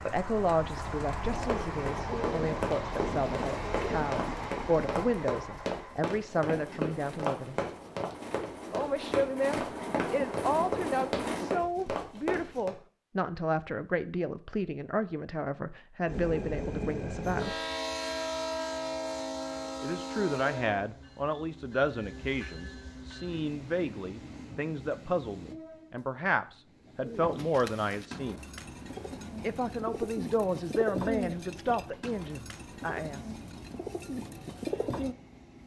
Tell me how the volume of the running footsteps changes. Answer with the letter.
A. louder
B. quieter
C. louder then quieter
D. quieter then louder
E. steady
E.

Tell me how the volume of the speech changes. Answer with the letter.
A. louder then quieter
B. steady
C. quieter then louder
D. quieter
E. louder
B.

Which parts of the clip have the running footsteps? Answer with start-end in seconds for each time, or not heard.
1.4-12.7.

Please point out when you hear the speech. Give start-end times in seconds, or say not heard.
0.0-7.6, 8.7-17.6, 19.8-28.4, 29.4-33.4.